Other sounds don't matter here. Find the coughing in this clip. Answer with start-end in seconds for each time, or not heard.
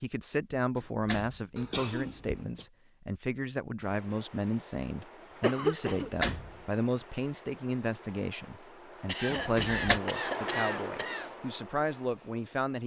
1.6-2.6, 5.0-6.1, 9.1-11.3.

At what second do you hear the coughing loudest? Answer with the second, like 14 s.
6 s.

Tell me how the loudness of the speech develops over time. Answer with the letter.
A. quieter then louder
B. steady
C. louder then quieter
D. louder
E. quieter
B.